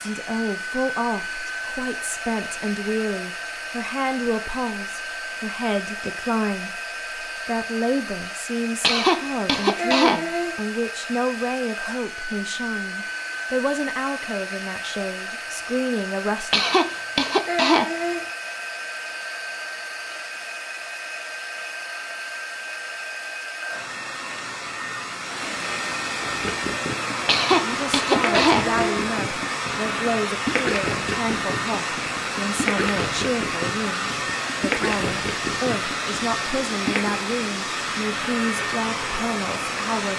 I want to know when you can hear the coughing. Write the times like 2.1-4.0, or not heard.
8.8-10.6, 16.5-18.2, 27.2-29.0.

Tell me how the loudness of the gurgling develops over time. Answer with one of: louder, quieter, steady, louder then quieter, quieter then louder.
steady.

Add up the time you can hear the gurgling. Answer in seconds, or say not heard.
11 s.